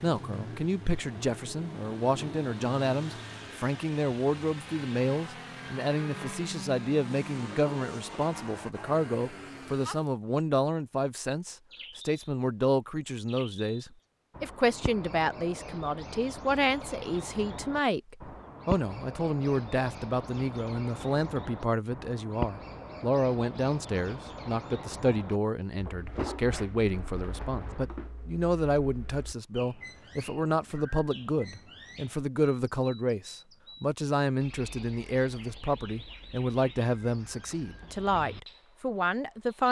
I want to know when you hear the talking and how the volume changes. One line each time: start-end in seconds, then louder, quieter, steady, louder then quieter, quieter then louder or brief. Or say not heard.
0.0-39.6 steady.